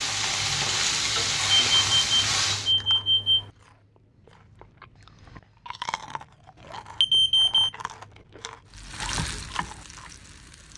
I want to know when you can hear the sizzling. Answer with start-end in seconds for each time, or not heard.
0.0-2.8, 8.7-10.7.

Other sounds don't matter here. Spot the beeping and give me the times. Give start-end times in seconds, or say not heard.
1.4-3.5, 7.0-7.7.